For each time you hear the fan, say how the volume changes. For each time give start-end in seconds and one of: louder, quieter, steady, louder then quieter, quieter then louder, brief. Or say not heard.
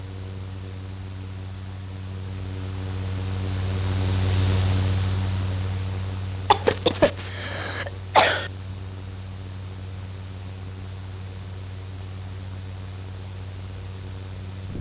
0.0-14.7 louder then quieter.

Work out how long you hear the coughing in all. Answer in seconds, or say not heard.
2 s.